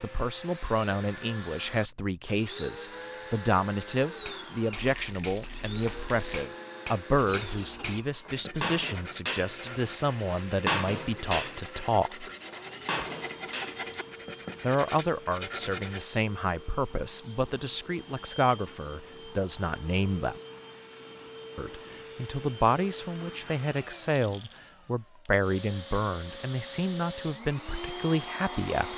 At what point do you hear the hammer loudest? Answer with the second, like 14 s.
11 s.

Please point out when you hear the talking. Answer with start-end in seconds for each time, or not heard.
0.0-12.3, 14.6-20.4, 21.6-28.9.